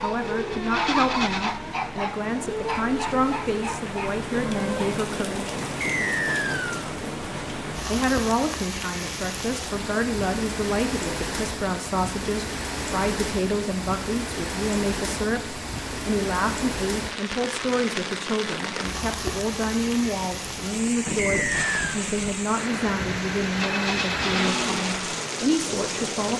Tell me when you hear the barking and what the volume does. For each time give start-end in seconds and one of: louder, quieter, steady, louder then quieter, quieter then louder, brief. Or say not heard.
0.0-5.0 quieter.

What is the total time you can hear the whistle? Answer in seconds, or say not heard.
2 s.